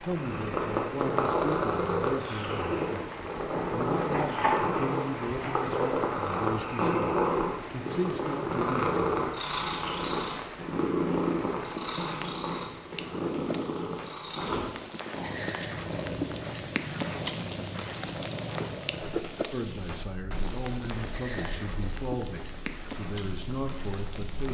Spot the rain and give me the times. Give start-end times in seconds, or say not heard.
0.0-24.5.